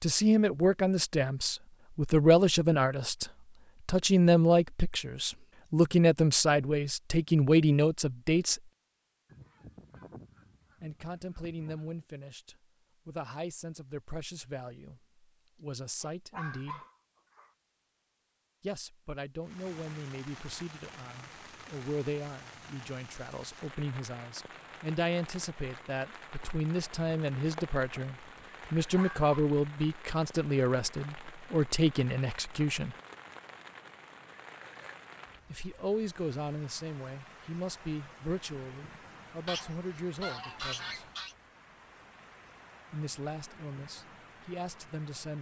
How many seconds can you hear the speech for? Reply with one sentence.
The speech can be heard for 37 seconds in total.